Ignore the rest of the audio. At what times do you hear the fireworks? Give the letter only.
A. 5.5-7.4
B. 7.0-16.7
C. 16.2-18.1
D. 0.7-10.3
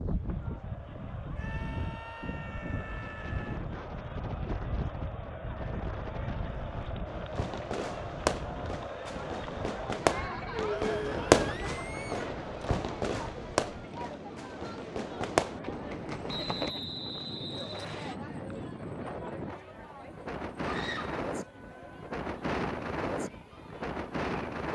B.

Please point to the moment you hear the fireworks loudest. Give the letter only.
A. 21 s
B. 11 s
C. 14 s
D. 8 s
B.